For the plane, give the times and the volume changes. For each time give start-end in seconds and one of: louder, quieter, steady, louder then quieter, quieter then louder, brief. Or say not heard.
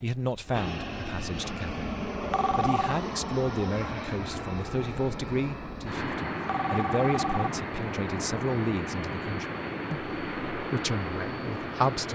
0.0-12.1 steady.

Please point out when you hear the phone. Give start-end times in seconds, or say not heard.
2.3-3.0, 6.5-7.5.